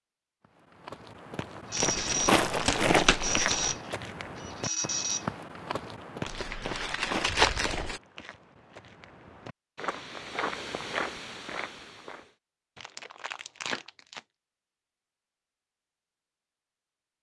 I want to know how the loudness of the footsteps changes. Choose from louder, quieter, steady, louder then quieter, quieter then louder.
quieter then louder.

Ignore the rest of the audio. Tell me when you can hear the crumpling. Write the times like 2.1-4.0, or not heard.
1.8-3.8, 6.2-8.0, 12.8-14.2.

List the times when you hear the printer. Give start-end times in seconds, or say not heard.
1.7-5.3.